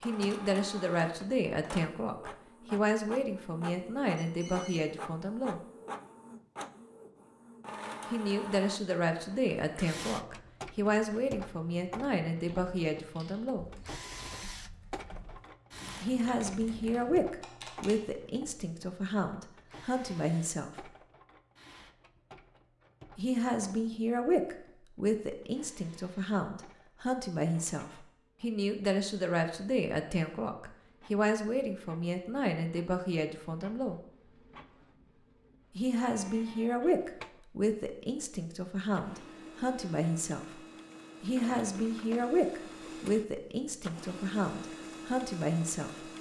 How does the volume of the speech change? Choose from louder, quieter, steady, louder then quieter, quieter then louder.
steady.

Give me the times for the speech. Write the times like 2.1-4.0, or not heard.
0.0-5.6, 8.1-13.7, 16.0-20.9, 23.1-34.0, 35.8-40.6, 41.2-46.1.